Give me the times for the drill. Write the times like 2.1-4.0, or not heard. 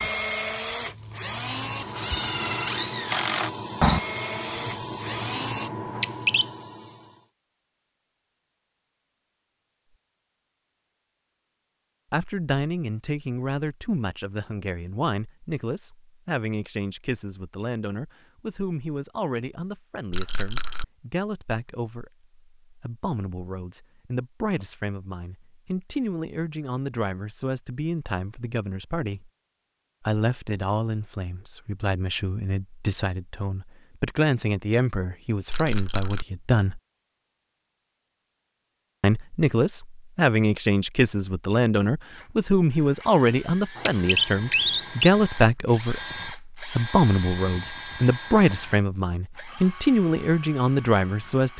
0.0-5.7, 42.0-51.5.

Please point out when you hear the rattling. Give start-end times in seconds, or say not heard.
20.1-20.9, 35.5-36.2.